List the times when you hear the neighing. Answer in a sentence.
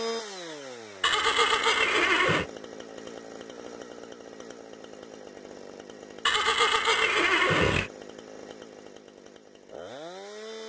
The neighing can be heard from 1.0 to 2.5 s and from 6.2 to 7.9 s.